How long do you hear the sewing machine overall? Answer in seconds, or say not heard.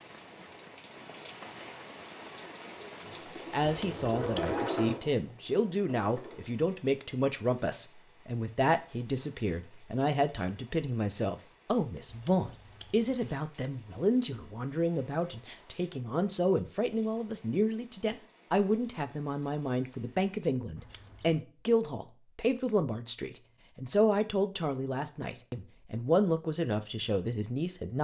3 s.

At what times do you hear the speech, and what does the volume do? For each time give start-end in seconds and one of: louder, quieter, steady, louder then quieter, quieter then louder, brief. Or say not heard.
3.1-28.0 steady.